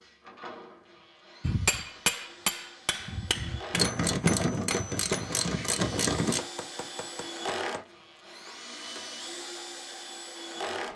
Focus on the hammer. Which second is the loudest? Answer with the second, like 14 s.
2 s.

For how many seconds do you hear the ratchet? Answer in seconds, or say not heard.
3 s.